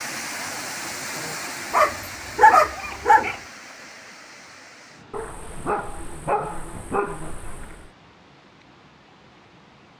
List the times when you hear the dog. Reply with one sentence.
You can hear the dog from 1.7 to 3.4 s and from 5.1 to 7.9 s.